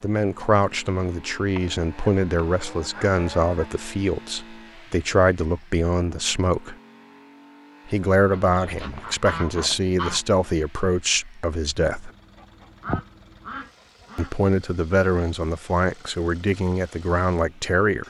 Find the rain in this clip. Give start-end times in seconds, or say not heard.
not heard.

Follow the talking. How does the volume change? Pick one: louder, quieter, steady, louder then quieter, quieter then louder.
steady.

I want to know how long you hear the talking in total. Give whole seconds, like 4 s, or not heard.
15 s.